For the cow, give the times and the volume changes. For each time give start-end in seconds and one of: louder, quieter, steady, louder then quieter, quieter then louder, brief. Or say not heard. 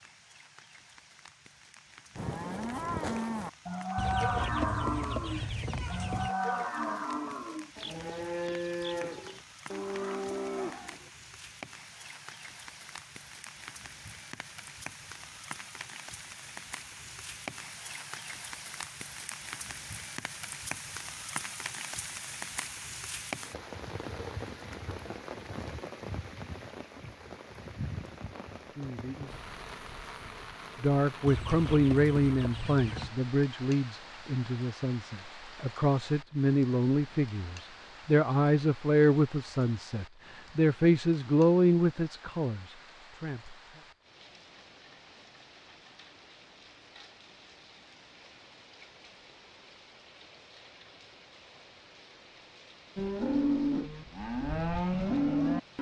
2.1-11.1 steady
53.0-55.7 brief.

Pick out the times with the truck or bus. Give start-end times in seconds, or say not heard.
not heard.